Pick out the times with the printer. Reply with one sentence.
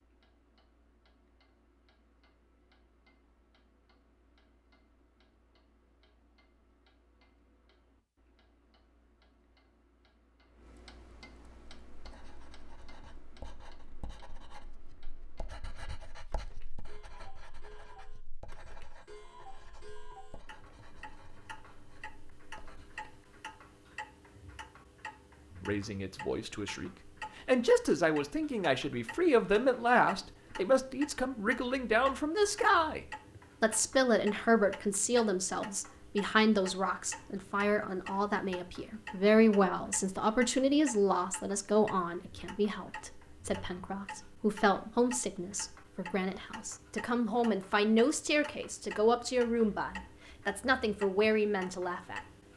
The printer can't be heard in this clip.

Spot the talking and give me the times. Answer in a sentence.
You can hear the talking from 25.6 to 52.2 s.